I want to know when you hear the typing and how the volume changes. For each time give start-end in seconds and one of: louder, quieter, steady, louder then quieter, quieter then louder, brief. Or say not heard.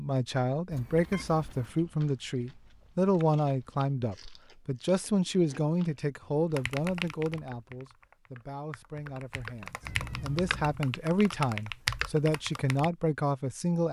6.5-12.9 quieter then louder.